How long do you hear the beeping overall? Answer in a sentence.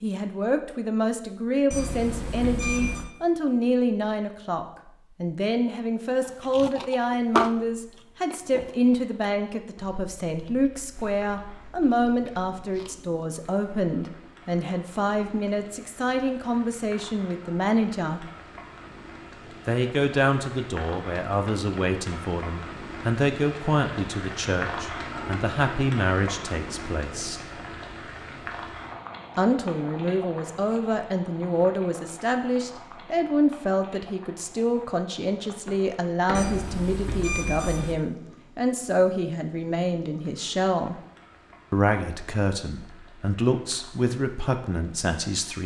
The beeping can be heard for 3 seconds in total.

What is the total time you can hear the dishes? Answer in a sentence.
The dishes can't be heard in this clip.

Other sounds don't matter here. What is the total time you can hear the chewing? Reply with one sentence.
The chewing can be heard for 7 seconds in total.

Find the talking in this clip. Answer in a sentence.
You can hear the talking from 0.0 to 18.2 s, from 19.6 to 27.4 s, from 29.4 to 41.0 s and from 41.7 to 45.6 s.